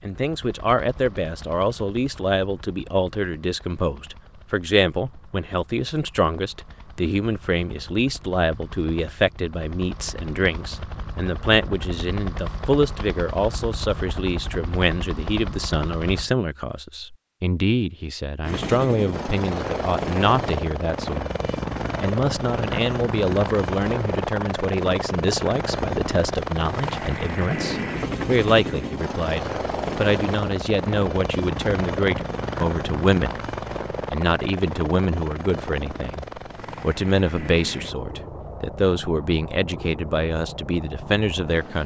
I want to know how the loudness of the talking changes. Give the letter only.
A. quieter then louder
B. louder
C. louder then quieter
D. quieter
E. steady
E.